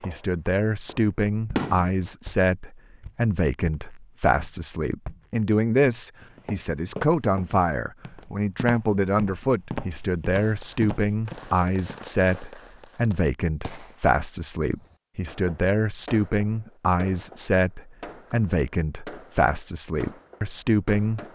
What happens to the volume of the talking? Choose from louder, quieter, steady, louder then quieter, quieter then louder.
steady.